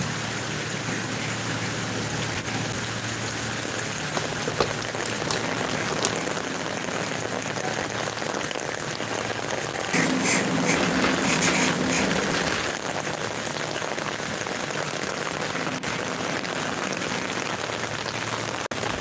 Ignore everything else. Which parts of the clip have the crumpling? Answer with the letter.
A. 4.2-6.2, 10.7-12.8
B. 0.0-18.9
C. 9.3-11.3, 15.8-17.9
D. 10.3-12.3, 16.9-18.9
A.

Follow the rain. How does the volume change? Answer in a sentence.
The volume of the rain stays about the same.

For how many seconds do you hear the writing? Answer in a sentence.
You can hear the writing for 9 seconds altogether.